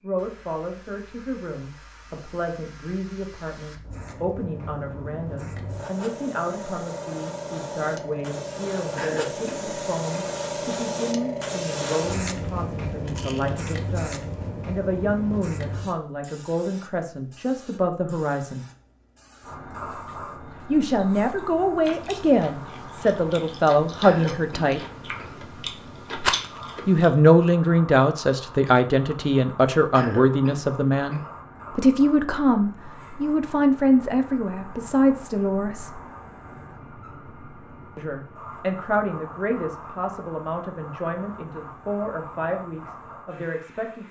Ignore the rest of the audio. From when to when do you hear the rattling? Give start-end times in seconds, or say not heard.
13.1-13.8, 26.1-26.6.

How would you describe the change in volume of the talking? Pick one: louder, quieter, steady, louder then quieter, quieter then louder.
louder then quieter.